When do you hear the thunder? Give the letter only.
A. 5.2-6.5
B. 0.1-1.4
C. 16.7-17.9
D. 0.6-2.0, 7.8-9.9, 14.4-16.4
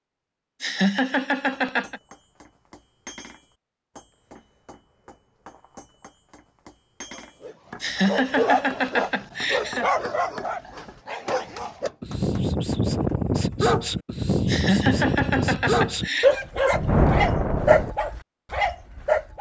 C.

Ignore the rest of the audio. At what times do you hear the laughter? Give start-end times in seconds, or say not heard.
0.6-2.0, 7.8-9.9, 14.4-16.4.